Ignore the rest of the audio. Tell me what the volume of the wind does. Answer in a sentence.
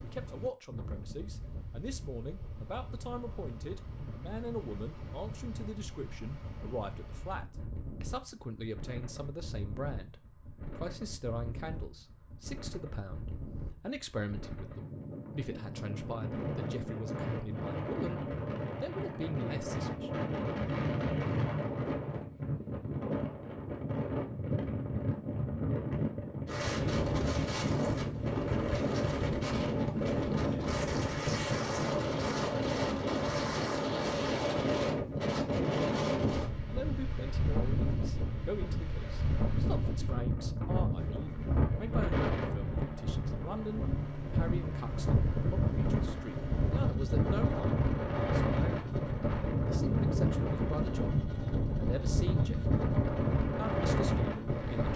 The volume of the wind goes up.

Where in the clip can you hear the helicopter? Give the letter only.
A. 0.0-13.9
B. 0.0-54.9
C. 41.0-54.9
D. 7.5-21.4
C.